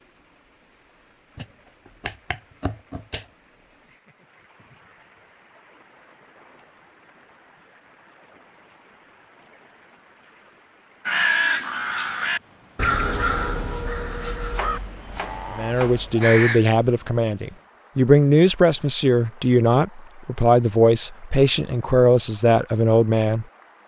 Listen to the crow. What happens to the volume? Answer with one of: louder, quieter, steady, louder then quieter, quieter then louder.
quieter.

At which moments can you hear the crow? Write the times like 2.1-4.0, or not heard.
11.1-16.6.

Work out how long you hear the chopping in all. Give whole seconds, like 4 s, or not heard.
4 s.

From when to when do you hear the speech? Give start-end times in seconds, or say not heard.
15.5-23.8.